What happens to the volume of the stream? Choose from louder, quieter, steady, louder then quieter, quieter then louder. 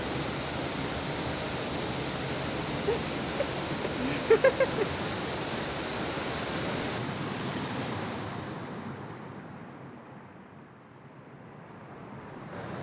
quieter.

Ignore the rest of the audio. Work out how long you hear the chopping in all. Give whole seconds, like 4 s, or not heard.
not heard.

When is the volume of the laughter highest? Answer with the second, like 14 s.
4 s.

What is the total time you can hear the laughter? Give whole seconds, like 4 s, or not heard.
2 s.